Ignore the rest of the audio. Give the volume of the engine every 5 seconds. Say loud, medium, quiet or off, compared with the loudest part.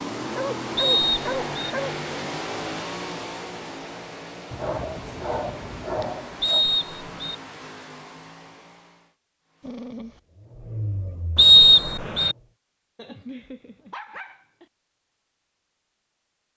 loud, medium, medium, off.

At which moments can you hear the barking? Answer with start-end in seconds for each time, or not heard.
0.3-1.9, 4.5-6.7, 9.6-10.2, 12.9-14.7.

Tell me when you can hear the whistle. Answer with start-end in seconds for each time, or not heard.
0.8-1.6, 6.4-7.3, 11.3-12.3.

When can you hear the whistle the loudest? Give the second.
12 s.